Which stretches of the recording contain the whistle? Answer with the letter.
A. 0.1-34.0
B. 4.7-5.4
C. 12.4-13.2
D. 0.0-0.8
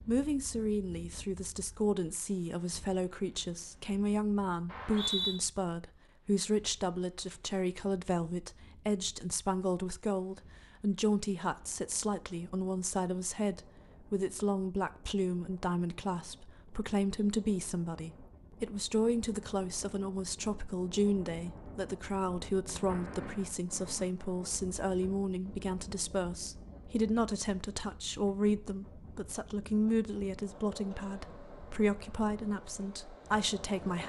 B.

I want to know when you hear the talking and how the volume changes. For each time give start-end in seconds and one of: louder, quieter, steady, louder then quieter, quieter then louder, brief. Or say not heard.
0.1-34.0 steady.